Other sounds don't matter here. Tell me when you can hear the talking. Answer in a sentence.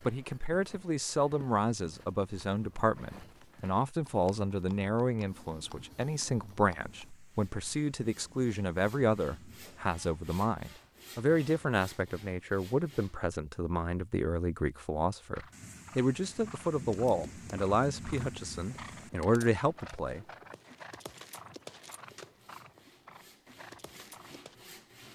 You can hear the talking from 0.1 to 20.2 s.